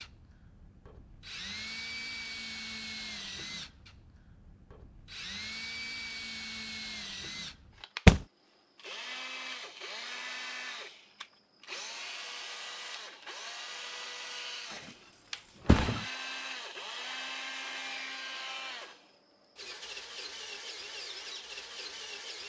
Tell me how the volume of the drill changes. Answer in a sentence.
The loudness of the drill stays about the same.